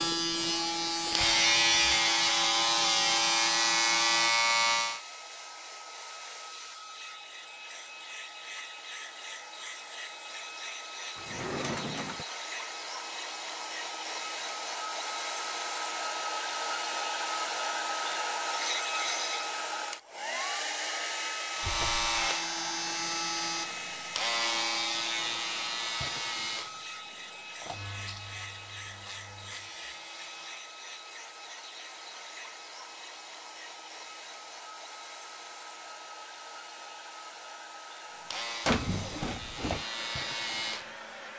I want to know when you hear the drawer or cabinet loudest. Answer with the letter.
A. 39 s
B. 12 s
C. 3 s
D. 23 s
A.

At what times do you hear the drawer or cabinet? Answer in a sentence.
The drawer or cabinet can be heard from 11.2 to 12.2 s, from 21.6 to 22.1 s and from 38.6 to 39.9 s.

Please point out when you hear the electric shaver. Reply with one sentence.
The electric shaver can be heard from 0.0 to 5.0 s, from 21.5 to 30.7 s and from 38.3 to 41.3 s.